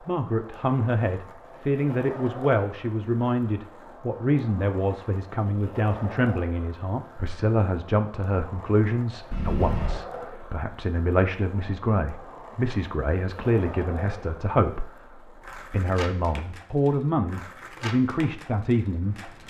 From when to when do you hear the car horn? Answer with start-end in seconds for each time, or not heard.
9.3-10.0.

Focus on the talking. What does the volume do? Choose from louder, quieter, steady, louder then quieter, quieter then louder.
steady.